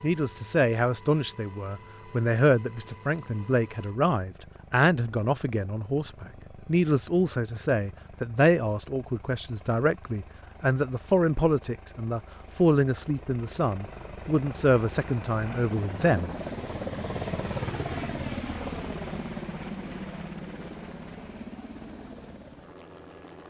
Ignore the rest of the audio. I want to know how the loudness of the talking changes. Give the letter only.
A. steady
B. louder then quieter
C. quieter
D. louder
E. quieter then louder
A.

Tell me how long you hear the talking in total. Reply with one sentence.
You can hear the talking for 16 seconds altogether.